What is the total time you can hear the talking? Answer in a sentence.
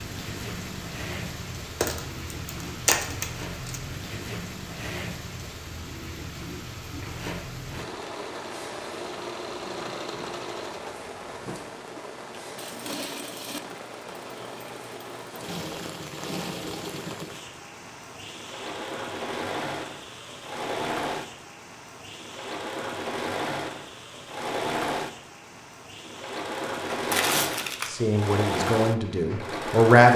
You can hear the talking for 2 seconds altogether.